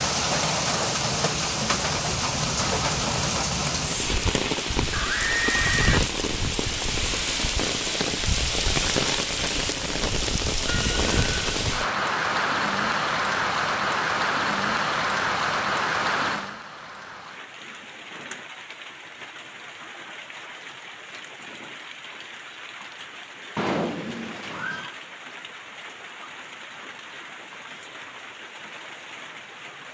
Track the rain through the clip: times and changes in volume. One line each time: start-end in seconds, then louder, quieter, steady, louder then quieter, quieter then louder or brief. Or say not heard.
0.0-29.8 quieter.